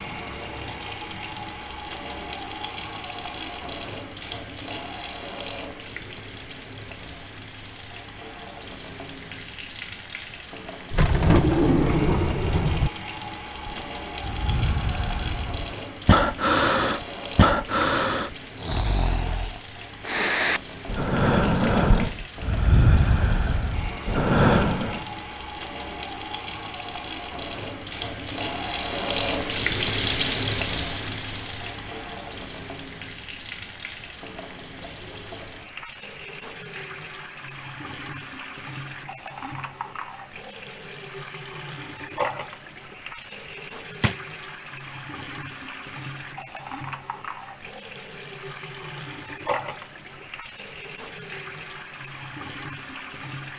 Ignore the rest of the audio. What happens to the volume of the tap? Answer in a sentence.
The volume of the tap goes up, then down.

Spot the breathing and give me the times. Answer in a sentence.
You can hear the breathing from 13.6 to 25.1 s.